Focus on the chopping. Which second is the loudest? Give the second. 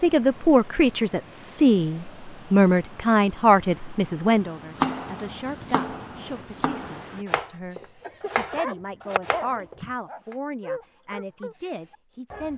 5 s.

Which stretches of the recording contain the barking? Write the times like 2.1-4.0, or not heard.
7.8-12.5.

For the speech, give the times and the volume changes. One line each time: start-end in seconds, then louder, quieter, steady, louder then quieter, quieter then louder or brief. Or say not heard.
0.0-12.5 quieter.